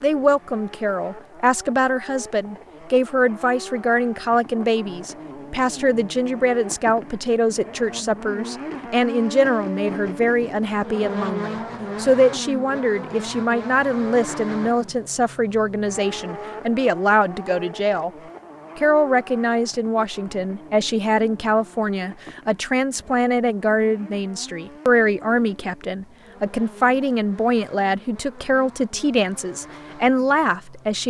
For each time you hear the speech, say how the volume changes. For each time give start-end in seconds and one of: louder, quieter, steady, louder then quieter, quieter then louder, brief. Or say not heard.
0.0-18.1 steady
18.8-31.0 steady.